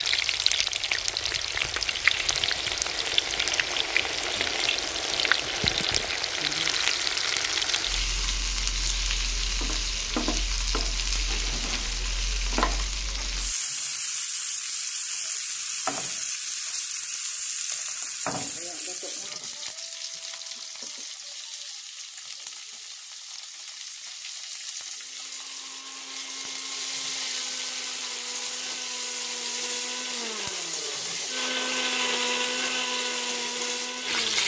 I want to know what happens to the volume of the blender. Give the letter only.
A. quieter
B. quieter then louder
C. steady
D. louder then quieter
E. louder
E.